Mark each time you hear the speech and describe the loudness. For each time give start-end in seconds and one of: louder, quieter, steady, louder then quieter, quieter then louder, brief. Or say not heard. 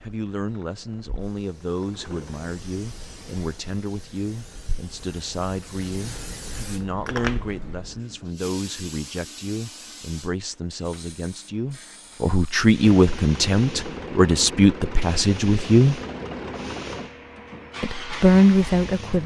0.0-16.0 louder
17.8-19.2 brief.